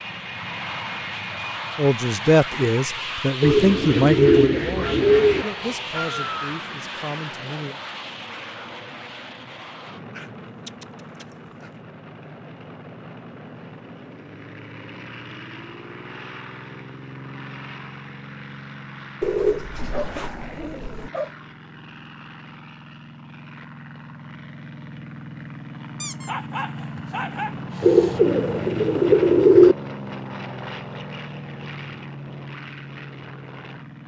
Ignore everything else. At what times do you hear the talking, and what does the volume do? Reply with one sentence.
The talking can be heard from 1.8 to 7.8 s, getting quieter.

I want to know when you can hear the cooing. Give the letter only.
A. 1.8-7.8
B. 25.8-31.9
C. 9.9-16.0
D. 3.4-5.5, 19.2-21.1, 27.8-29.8
D.